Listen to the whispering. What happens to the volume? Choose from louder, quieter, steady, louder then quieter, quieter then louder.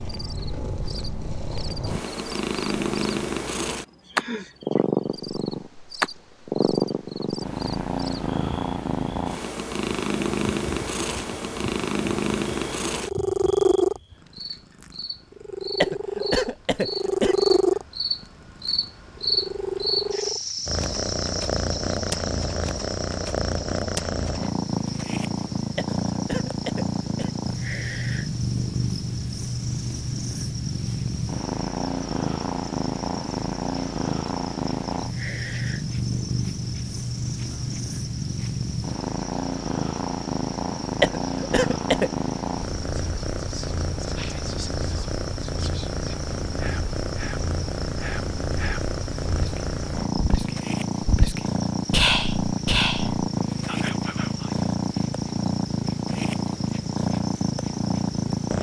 louder.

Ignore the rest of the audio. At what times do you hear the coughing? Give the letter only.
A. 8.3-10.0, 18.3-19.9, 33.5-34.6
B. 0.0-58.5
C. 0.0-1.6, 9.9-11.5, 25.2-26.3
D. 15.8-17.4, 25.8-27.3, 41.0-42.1
D.